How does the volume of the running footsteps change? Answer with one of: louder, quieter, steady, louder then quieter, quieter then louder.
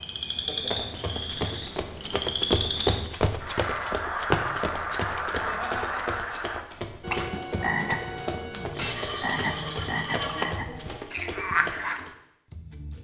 quieter.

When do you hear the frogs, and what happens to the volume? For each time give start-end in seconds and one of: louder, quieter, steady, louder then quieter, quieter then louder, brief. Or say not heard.
0.0-12.9 steady.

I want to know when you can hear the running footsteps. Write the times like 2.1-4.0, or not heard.
0.6-12.2.